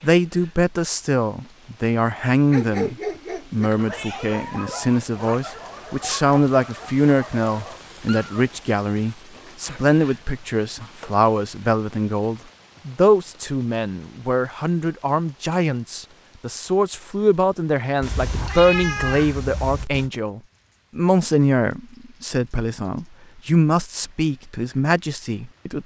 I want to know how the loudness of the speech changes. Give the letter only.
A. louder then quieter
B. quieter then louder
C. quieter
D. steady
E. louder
D.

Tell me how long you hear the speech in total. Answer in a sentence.
The speech can be heard for 26 seconds in total.